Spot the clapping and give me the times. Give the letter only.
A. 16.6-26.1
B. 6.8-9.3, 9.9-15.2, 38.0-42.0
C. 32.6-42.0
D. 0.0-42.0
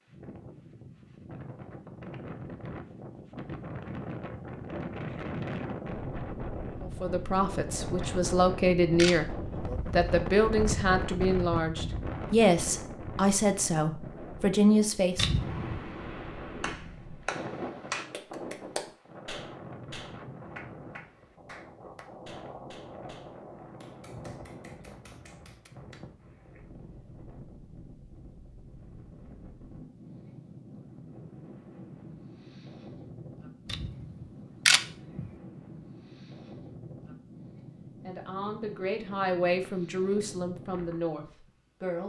A.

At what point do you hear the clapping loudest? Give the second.
18 s.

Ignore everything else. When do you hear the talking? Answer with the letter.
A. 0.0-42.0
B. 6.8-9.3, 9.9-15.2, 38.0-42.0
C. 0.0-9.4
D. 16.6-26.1
B.